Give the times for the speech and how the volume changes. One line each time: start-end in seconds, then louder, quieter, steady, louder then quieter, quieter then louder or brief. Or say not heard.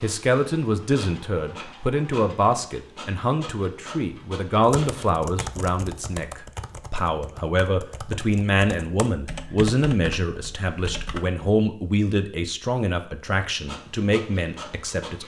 0.0-15.2 steady.